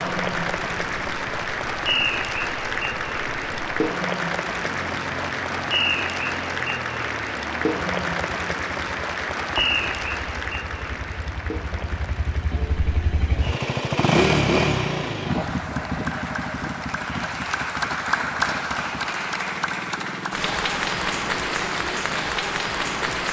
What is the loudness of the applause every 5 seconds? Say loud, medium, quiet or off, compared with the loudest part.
loud, loud, medium, loud, loud.